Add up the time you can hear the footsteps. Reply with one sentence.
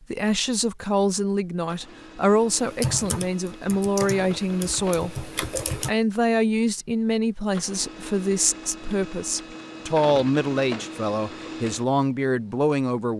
You can't hear the footsteps here.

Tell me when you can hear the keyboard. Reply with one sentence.
You can hear the keyboard from 2.5 to 6.0 s.